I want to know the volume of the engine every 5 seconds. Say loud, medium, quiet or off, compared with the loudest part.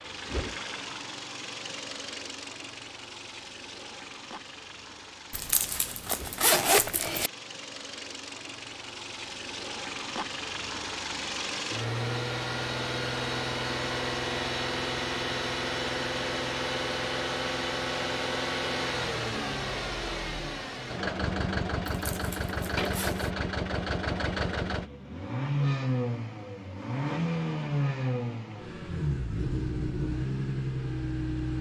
medium, medium, loud, loud, loud, loud, loud.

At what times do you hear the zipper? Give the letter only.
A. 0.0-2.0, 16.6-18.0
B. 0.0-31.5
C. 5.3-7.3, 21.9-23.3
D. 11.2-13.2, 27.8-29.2
C.